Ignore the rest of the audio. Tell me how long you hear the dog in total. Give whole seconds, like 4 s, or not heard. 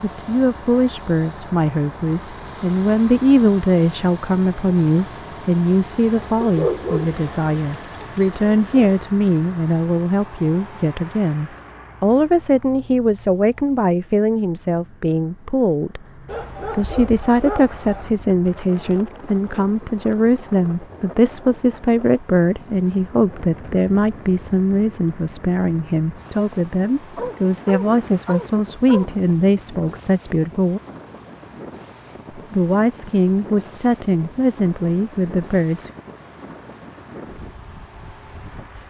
6 s.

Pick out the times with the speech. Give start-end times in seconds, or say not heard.
0.0-16.0, 16.7-30.8, 32.4-35.9.